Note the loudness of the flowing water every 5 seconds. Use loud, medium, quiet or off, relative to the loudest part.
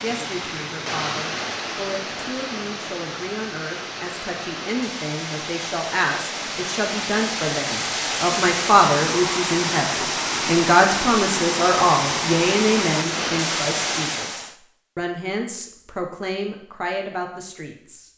medium, loud, loud, off.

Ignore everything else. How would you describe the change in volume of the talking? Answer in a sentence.
The loudness of the talking goes up, then down.